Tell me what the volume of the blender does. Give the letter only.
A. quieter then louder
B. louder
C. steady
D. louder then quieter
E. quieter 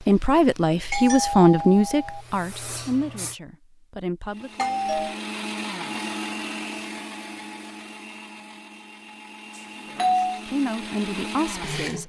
A.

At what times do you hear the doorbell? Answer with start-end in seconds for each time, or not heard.
0.9-2.2, 4.5-5.2, 9.6-10.3.